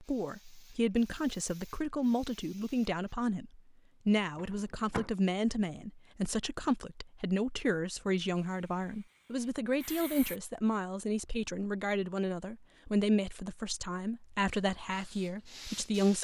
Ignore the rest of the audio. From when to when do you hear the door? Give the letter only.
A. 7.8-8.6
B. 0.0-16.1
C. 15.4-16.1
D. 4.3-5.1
D.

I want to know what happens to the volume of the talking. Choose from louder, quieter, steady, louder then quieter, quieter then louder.
steady.